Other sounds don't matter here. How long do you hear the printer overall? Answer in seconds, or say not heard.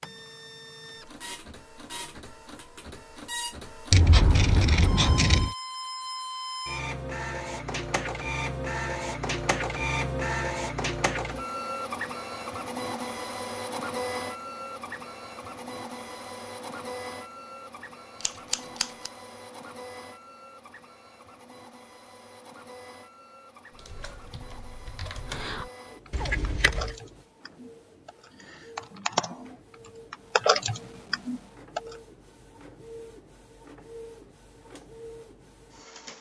36 s.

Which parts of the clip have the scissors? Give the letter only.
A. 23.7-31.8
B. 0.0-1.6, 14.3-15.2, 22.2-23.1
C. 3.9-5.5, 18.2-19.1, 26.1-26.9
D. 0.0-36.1
C.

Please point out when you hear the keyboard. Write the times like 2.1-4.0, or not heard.
23.7-31.8.